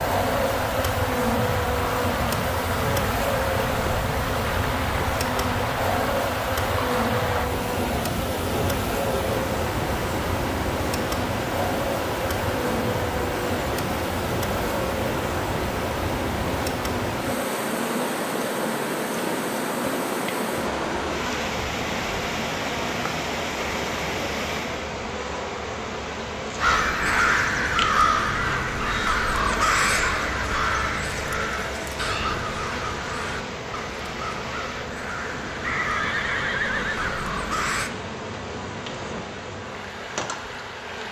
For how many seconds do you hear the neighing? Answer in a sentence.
The neighing can be heard for 2 seconds in total.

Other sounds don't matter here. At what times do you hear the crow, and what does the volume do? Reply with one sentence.
The crow can be heard from 26.6 to 37.9 s, getting quieter.